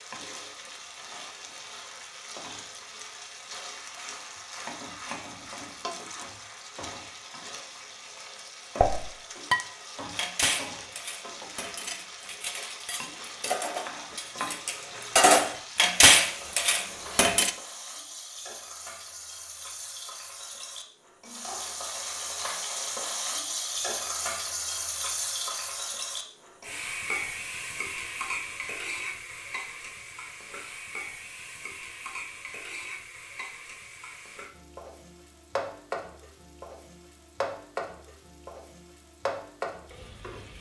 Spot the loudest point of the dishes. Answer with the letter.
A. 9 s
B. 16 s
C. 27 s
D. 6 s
B.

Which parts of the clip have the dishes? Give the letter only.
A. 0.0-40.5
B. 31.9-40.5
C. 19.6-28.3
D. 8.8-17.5
D.